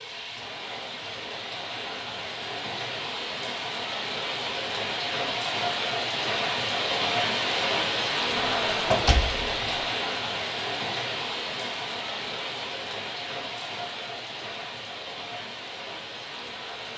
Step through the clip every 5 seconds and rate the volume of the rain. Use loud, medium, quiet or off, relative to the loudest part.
medium, loud, medium, medium.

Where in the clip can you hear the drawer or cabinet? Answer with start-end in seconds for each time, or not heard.
8.3-9.8.